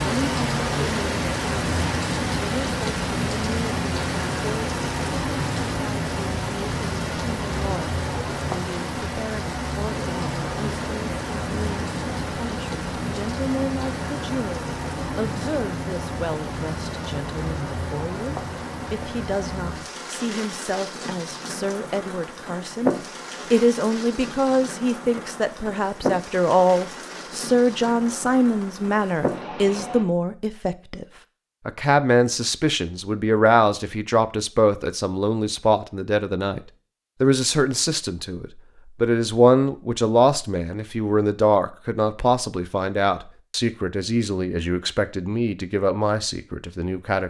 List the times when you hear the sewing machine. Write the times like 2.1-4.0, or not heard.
not heard.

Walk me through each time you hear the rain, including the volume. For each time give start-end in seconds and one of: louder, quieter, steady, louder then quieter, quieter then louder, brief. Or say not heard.
0.0-30.1 quieter.